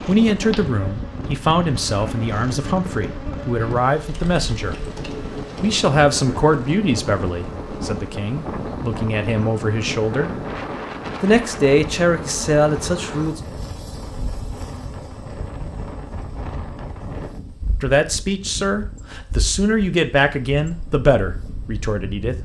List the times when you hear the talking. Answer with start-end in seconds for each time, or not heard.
0.1-4.8, 5.6-10.3, 11.2-13.4, 17.8-22.4.